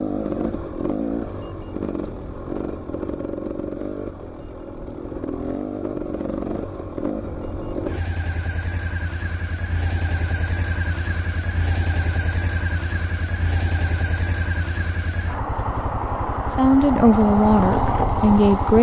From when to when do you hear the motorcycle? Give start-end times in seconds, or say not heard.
0.0-18.7.